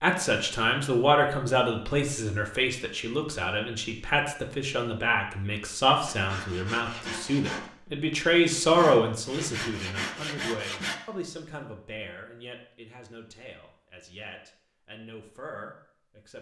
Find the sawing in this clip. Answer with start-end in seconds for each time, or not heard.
6.0-10.9.